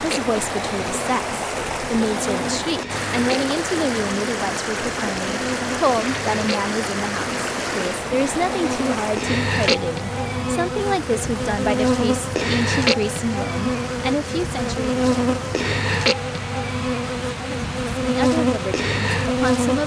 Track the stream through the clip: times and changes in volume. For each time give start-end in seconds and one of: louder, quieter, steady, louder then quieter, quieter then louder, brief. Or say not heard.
0.0-19.8 quieter.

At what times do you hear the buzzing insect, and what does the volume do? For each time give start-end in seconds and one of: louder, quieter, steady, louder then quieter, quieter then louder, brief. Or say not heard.
0.0-19.8 louder.